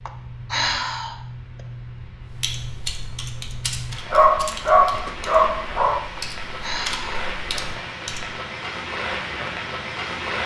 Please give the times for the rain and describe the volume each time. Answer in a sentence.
You can hear the rain from 0.0 to 10.4 s, getting louder.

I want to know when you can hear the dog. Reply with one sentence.
The dog can be heard from 4.1 to 6.0 s.